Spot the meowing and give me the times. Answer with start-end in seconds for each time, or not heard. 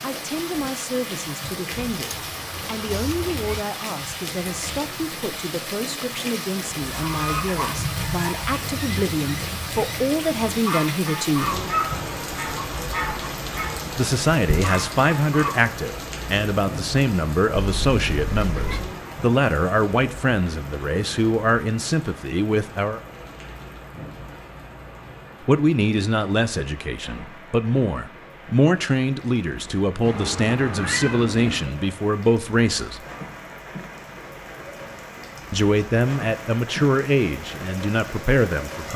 2.0-3.6, 17.5-18.9, 30.0-31.7.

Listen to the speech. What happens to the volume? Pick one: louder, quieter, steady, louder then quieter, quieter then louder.
louder.